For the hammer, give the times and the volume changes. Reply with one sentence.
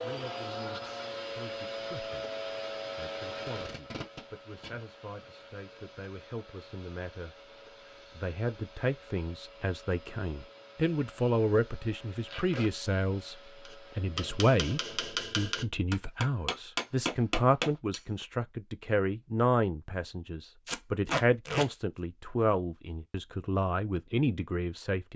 The hammer can be heard from 13.7 to 18.0 s, getting louder.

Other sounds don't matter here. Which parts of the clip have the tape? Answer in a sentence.
The tape can be heard from 3.4 to 5.2 s, from 12.2 to 12.7 s and from 20.6 to 21.6 s.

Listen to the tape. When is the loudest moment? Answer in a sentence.
The volume of the tape peaks at 21 seconds.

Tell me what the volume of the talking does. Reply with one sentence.
The volume of the talking goes up.